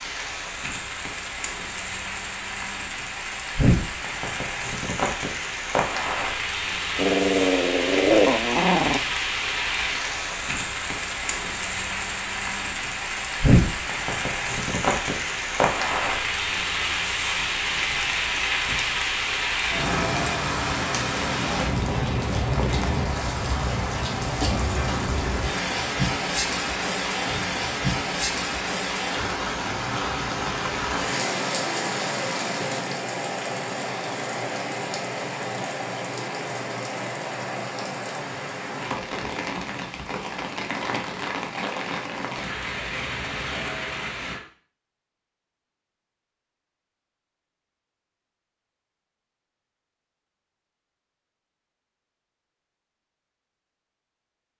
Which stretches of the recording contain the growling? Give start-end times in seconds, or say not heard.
7.0-9.0.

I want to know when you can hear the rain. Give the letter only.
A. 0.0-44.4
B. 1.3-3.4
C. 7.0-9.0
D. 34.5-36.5
A.